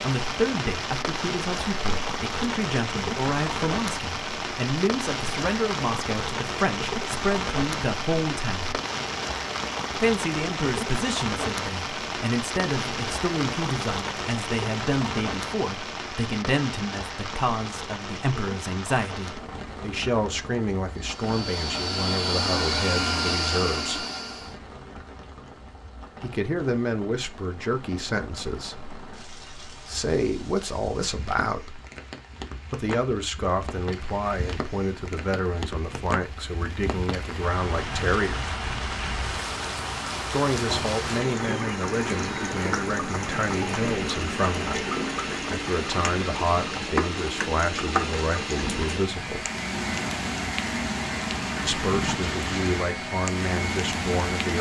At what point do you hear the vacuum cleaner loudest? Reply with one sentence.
The loudest moment of the vacuum cleaner is at 23 seconds.